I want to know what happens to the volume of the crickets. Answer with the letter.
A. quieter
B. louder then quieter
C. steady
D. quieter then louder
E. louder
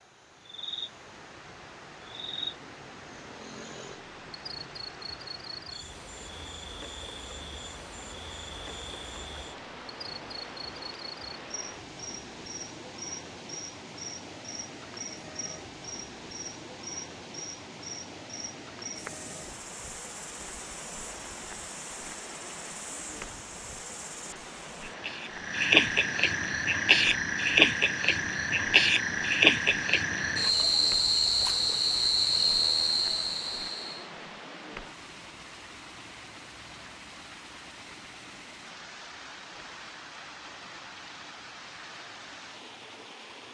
E.